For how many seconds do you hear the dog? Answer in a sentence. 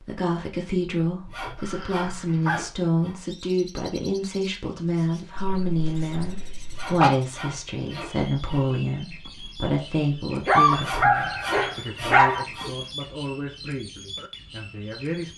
The dog can be heard for 5 seconds in total.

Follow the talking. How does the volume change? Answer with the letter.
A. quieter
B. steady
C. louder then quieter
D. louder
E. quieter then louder
A.